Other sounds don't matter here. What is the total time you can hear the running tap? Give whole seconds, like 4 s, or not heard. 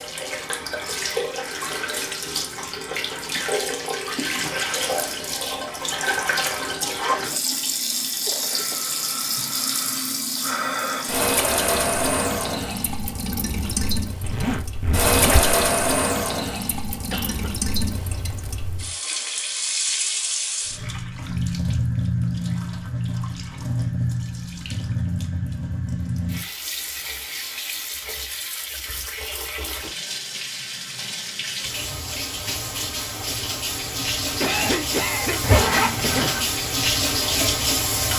38 s.